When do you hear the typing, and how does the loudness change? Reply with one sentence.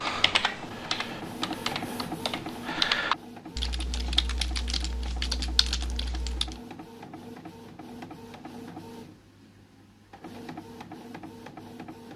The typing can be heard from 0.0 to 6.6 s, getting louder then quieter.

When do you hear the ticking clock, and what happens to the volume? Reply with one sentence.
You can't hear the ticking clock here.